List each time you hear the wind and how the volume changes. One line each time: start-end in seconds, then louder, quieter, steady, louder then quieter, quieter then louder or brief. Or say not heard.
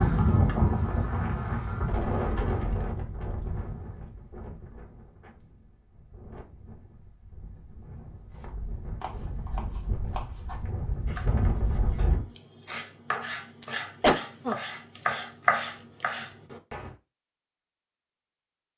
0.0-12.2 quieter then louder.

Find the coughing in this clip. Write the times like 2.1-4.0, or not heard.
14.0-14.6.